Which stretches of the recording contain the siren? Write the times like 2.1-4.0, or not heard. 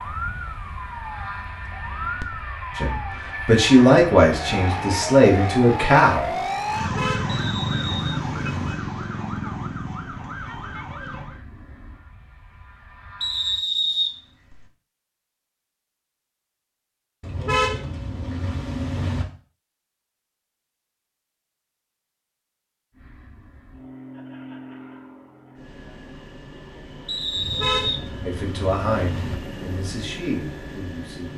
0.0-11.4.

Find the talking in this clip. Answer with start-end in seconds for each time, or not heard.
2.8-6.3, 28.2-31.3.